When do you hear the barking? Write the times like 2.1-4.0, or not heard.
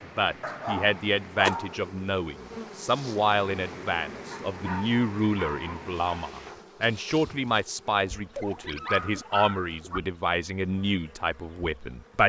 0.4-1.9, 4.3-6.3, 8.3-10.0.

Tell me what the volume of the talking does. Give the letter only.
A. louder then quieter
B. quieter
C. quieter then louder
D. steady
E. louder
D.